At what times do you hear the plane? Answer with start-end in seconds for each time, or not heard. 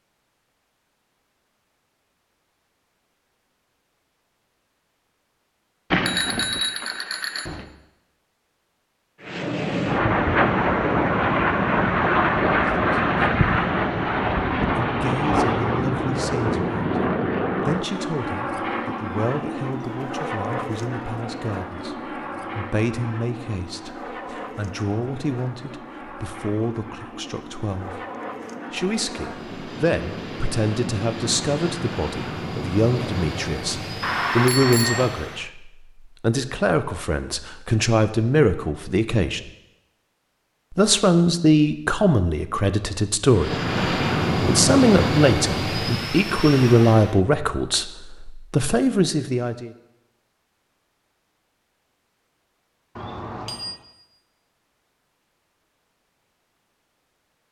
9.2-35.5, 43.2-47.2.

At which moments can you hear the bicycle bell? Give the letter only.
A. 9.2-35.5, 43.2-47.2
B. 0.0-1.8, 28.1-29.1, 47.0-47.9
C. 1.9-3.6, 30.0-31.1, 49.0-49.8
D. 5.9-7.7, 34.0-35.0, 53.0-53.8
D.